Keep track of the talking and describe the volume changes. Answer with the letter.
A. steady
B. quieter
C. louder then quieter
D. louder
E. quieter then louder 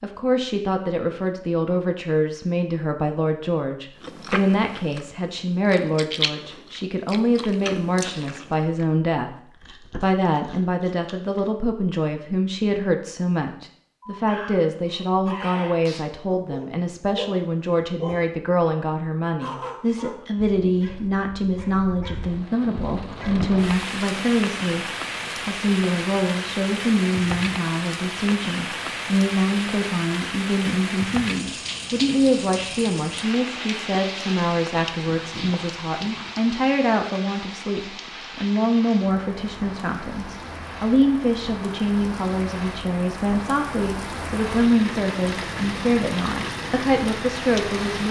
A.